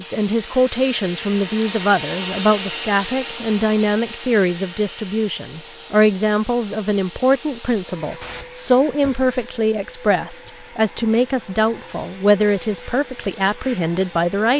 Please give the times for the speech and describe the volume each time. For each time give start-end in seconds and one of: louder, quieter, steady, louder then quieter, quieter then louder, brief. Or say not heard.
0.0-14.5 steady.